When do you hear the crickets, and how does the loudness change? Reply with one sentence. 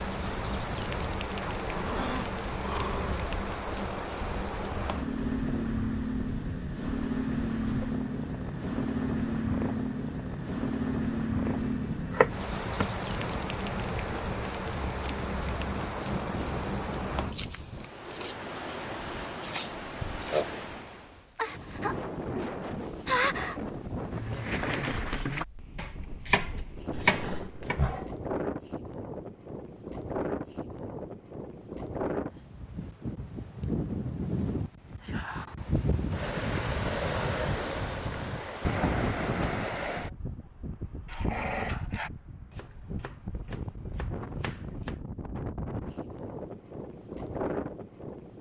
The crickets can be heard from 0.0 to 25.4 s, at a steady volume.